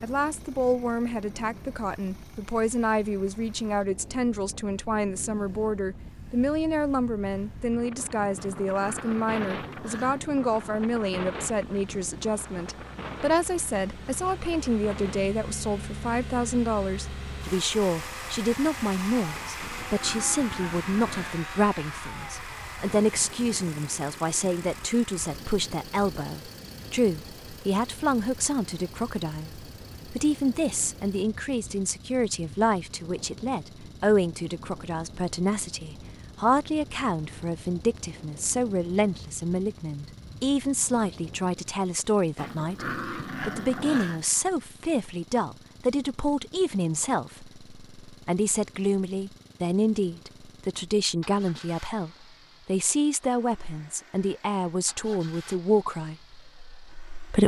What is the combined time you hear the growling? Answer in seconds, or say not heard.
6 s.